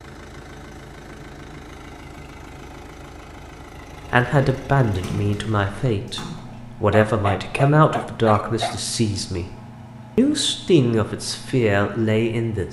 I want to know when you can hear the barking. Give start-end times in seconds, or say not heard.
6.9-8.8.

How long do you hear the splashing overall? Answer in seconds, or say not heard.
2 s.